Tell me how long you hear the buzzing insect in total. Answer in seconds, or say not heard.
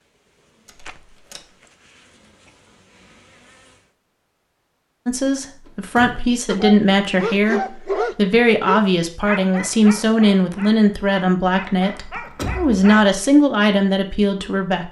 4 s.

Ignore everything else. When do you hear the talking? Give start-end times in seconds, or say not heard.
5.0-14.8.